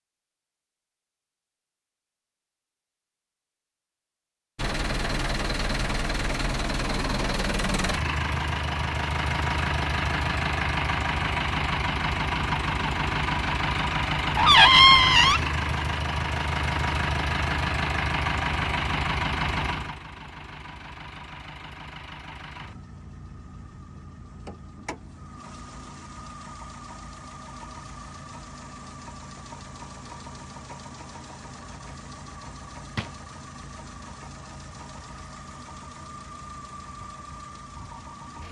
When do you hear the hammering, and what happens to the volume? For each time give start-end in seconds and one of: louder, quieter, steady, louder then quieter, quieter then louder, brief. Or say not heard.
not heard.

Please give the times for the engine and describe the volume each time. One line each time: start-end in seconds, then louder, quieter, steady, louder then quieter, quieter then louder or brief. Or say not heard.
4.5-38.4 quieter.